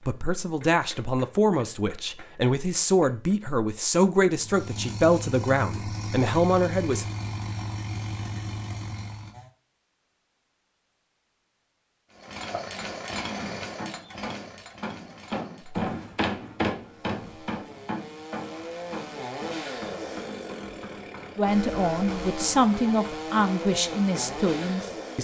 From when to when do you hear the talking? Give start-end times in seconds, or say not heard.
0.1-7.0, 21.4-25.1.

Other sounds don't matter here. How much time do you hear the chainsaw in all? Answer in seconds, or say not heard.
18 s.